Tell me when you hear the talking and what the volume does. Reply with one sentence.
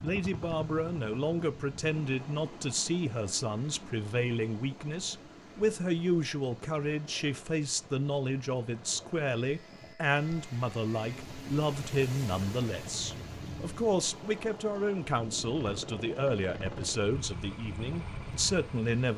You can hear the talking from 0.0 to 19.1 s, at a steady volume.